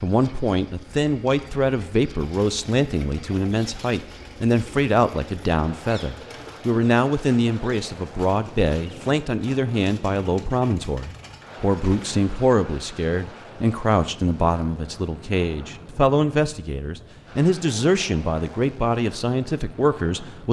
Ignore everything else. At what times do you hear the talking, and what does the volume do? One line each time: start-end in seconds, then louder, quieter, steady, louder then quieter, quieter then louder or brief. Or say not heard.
0.0-20.4 steady.